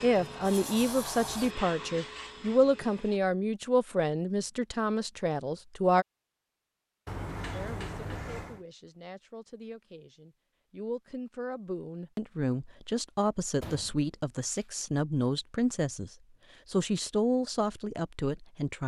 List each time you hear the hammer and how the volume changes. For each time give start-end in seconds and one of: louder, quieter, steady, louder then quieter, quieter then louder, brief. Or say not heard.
not heard.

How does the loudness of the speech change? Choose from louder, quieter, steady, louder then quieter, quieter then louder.
quieter then louder.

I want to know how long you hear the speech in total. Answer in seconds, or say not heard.
17 s.